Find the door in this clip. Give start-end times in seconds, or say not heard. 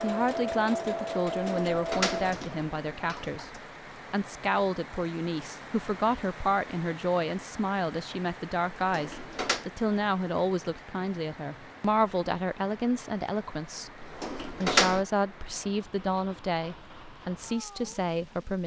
1.4-3.6, 8.8-9.7, 14.0-15.1.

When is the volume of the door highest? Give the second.
15 s.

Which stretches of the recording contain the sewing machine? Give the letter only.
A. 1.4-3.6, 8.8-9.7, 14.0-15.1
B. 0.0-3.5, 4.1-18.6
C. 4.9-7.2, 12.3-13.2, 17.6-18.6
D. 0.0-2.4
D.